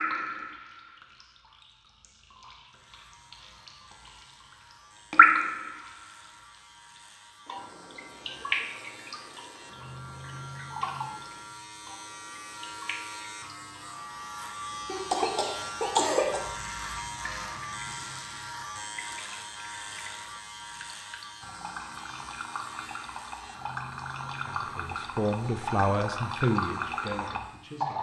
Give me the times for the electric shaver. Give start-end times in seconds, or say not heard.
2.6-27.9.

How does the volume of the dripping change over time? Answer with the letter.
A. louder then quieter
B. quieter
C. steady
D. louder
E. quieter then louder
E.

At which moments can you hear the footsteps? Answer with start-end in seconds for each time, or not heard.
not heard.